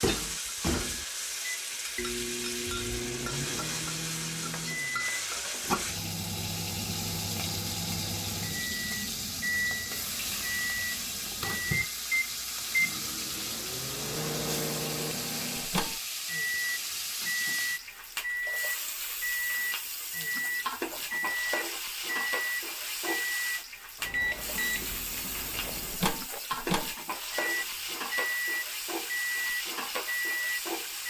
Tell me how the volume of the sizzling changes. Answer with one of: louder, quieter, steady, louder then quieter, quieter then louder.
steady.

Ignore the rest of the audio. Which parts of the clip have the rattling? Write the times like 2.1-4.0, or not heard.
25.6-26.5.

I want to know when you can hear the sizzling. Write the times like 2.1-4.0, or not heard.
0.0-31.0.